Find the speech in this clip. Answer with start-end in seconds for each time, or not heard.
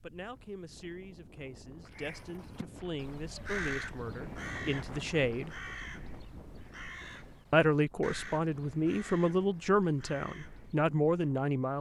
0.0-5.5, 7.5-11.7.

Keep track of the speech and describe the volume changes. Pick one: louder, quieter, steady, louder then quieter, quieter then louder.
louder.